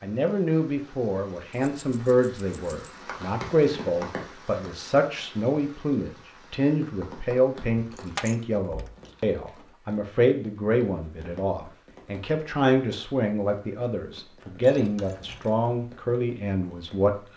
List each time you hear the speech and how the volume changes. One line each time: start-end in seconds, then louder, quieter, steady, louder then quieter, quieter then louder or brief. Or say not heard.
0.0-17.1 steady.